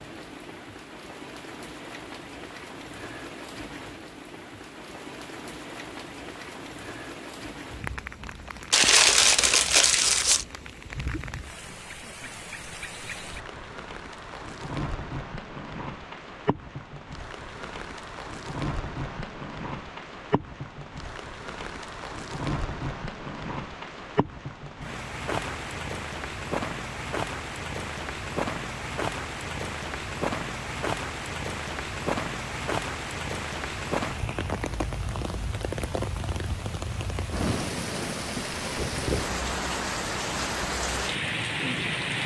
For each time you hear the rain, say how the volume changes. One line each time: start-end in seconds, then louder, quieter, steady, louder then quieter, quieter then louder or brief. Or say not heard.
0.0-42.2 louder.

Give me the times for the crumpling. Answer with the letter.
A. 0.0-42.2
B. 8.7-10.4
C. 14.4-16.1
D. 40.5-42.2
B.